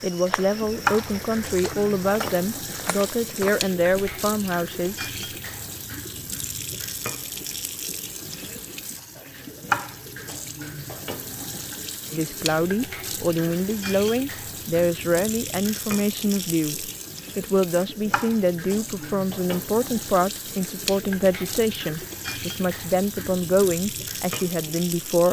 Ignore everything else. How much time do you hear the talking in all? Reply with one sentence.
The talking can be heard for 18 seconds in total.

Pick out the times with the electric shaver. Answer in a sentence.
You can't hear the electric shaver here.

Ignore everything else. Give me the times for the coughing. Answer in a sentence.
You can't hear the coughing here.